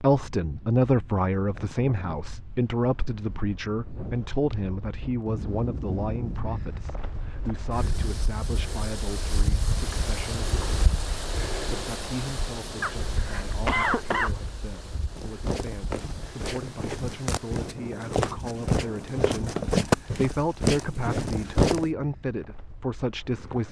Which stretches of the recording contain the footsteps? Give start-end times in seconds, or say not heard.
15.1-21.9.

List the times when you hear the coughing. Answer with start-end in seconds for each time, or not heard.
12.8-14.3.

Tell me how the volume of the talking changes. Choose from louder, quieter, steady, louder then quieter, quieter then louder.
quieter then louder.